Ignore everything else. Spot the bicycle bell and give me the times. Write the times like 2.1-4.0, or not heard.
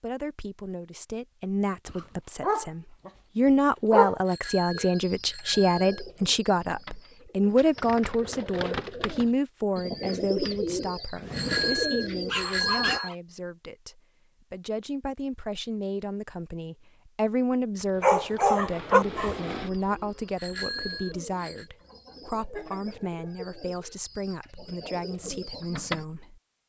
4.2-6.0, 11.3-13.1, 20.4-21.6.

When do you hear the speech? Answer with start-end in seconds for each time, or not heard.
0.0-26.4.